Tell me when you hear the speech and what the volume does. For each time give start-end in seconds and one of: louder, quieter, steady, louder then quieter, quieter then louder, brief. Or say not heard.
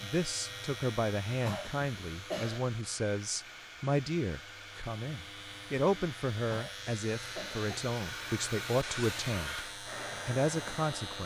0.0-9.7 steady
10.2-11.2 brief.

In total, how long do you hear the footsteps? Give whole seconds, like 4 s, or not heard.
not heard.